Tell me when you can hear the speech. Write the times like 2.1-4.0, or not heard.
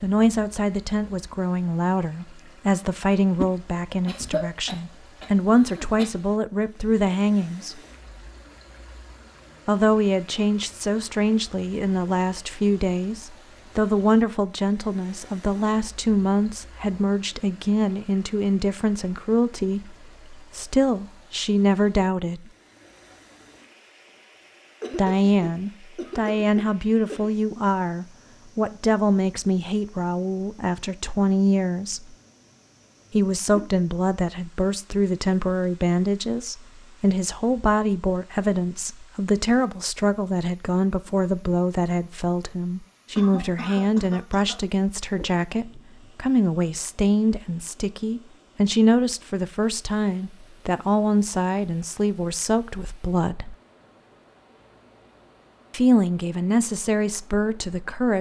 0.0-7.8, 9.7-22.5, 24.9-32.1, 33.1-53.5, 55.7-58.1.